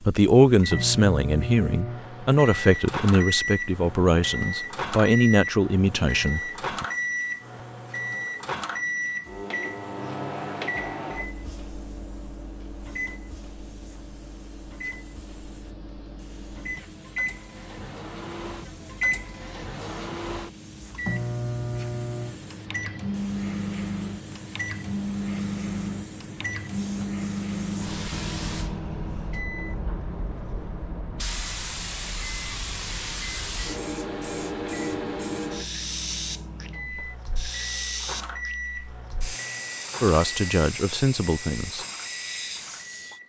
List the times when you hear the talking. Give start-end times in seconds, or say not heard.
0.0-6.8, 40.0-41.9.